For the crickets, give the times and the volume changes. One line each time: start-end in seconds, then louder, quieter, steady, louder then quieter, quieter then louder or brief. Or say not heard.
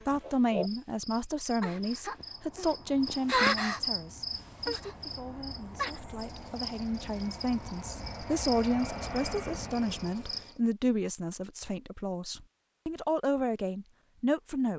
0.0-10.6 louder then quieter.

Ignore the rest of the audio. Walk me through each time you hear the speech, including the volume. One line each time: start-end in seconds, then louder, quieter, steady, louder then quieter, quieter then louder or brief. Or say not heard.
0.1-14.7 quieter then louder.